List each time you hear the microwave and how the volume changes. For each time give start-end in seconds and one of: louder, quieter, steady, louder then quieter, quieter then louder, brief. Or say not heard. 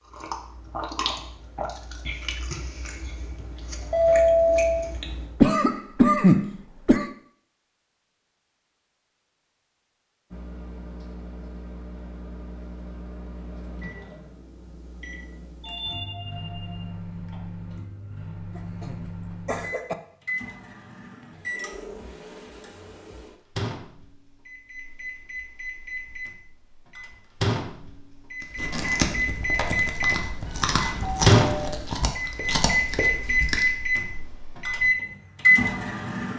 10.3-36.3 louder.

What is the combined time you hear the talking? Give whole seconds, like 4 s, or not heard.
not heard.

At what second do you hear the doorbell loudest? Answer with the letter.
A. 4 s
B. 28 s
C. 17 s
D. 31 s
A.